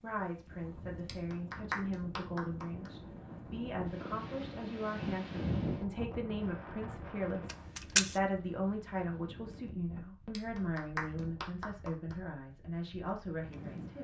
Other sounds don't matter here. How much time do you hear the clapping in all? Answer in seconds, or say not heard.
4 s.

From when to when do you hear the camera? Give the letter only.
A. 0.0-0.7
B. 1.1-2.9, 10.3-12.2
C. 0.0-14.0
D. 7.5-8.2
D.